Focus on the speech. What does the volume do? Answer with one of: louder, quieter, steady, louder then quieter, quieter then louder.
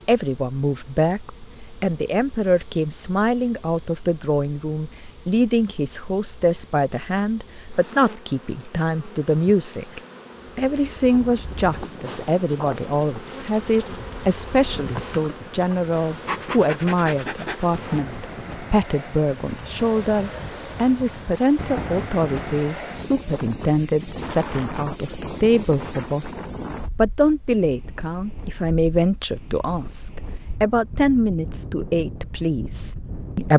steady.